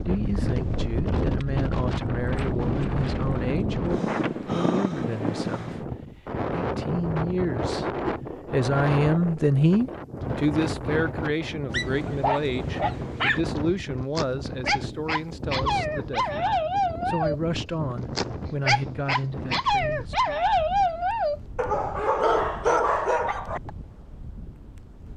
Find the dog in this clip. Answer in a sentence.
You can hear the dog from 11.7 to 23.7 s.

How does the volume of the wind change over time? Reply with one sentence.
The volume of the wind goes down.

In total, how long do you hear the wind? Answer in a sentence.
The wind can be heard for 25 seconds in total.